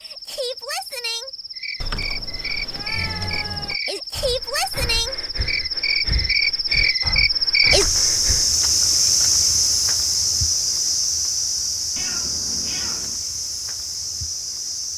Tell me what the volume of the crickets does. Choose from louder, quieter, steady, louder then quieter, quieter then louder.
louder then quieter.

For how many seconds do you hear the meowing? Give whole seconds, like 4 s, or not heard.
3 s.